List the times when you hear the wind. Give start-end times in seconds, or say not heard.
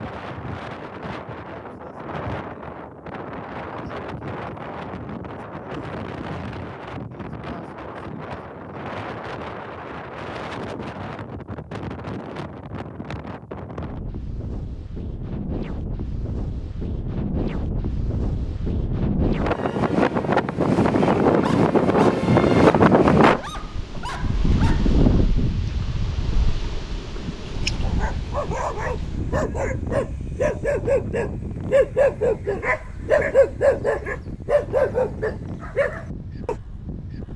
0.0-37.3.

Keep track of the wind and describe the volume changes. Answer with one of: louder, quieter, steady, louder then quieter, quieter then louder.
louder then quieter.